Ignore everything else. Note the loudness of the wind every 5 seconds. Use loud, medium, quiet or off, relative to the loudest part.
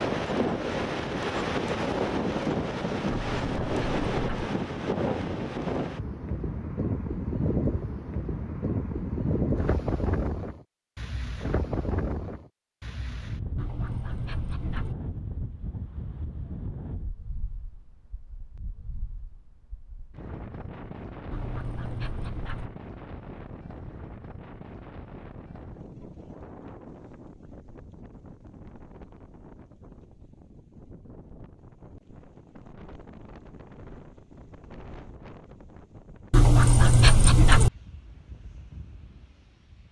loud, loud, medium, quiet, quiet, quiet, quiet, quiet.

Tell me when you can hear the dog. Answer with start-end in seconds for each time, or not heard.
3.1-4.5, 13.6-14.9, 21.3-22.7, 36.3-37.7.